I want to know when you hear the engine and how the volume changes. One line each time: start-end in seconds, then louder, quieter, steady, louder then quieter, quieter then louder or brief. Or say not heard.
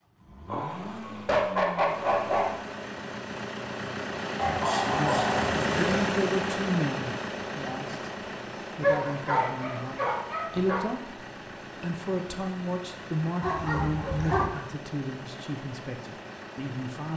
0.0-17.1 louder then quieter.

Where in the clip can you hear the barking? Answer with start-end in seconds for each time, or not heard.
0.5-2.5, 4.3-6.0, 8.8-10.8, 13.4-14.5.